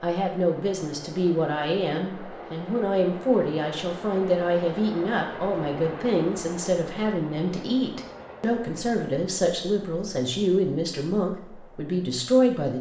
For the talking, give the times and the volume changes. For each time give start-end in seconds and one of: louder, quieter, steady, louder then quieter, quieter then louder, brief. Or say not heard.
0.0-12.7 steady.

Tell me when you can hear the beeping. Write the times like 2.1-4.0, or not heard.
not heard.